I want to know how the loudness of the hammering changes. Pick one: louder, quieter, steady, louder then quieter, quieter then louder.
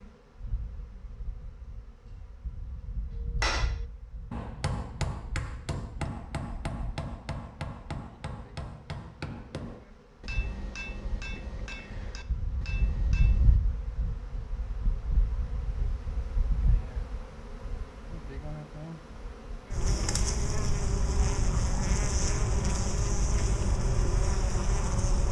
quieter.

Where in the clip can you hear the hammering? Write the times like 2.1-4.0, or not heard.
3.1-13.6.